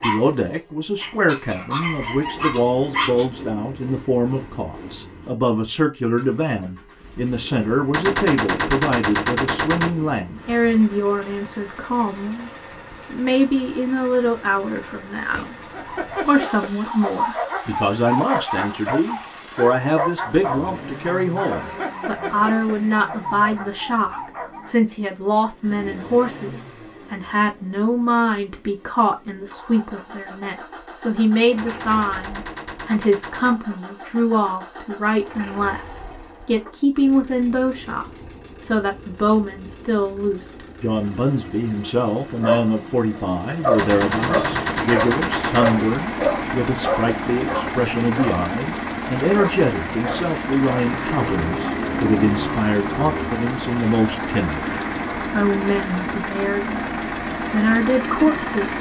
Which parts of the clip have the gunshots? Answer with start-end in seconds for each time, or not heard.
7.9-9.9, 31.6-33.5, 43.8-45.8.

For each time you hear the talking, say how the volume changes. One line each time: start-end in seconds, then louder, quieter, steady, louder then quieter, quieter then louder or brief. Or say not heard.
0.0-12.5 steady
13.1-58.7 steady.